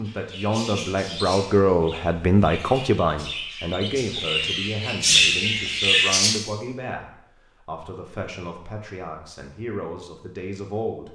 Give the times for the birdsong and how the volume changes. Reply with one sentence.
The birdsong can be heard from 0.0 to 6.3 s, getting quieter then louder.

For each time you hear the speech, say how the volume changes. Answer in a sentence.
You can hear the speech from 0.0 to 11.1 s, getting quieter.